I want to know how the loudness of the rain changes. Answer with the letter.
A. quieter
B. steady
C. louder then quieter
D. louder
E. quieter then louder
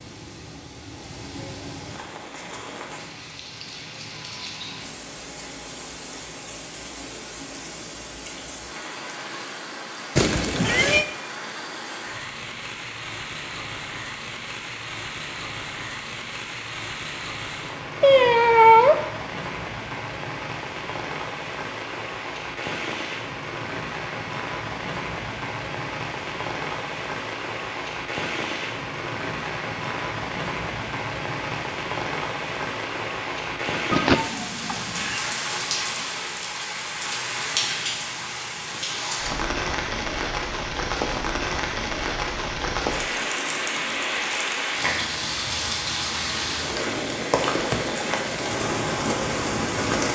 D.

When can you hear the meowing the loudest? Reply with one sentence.
The loudest moment of the meowing is at 19 seconds.